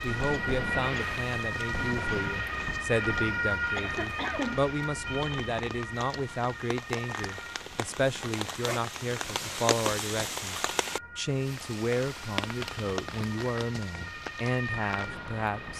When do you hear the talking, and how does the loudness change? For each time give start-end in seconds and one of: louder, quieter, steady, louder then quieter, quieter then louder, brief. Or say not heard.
0.0-15.7 steady.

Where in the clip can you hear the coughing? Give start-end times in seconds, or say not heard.
3.8-4.6.